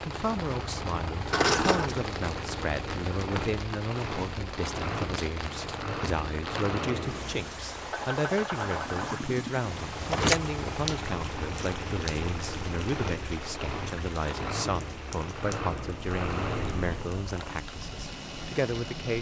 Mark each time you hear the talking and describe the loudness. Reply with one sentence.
The talking can be heard from 0.0 to 19.1 s, at a steady volume.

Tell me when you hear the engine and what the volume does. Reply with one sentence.
You can hear the engine from 0.0 to 19.1 s, at a steady volume.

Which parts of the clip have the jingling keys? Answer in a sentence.
You can hear the jingling keys from 1.3 to 2.0 s and from 9.7 to 10.4 s.